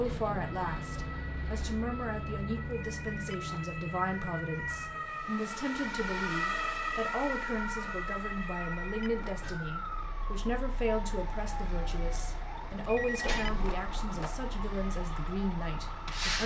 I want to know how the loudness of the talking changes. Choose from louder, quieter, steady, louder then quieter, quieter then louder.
steady.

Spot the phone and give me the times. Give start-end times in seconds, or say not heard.
2.9-3.7, 8.4-9.4, 12.8-14.4.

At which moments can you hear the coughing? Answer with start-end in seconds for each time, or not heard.
not heard.